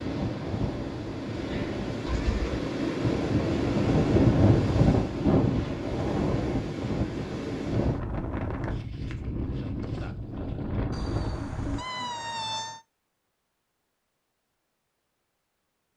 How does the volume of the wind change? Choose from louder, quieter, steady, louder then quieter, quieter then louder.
louder then quieter.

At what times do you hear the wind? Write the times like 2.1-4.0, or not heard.
0.0-11.8.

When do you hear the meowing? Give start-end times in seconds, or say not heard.
2.0-2.6, 10.9-12.8.